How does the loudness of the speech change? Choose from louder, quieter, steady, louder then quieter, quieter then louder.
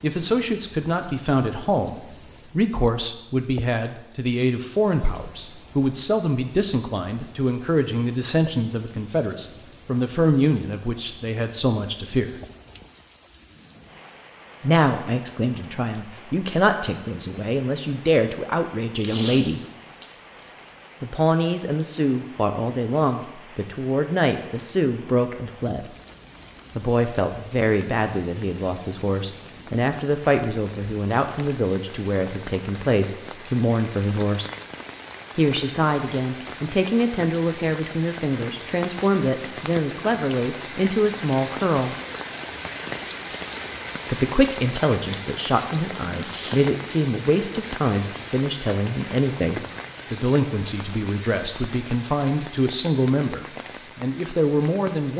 steady.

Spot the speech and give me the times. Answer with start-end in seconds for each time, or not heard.
0.0-12.3, 14.6-19.6, 21.0-25.9, 26.8-34.5, 35.4-42.0, 44.1-55.1.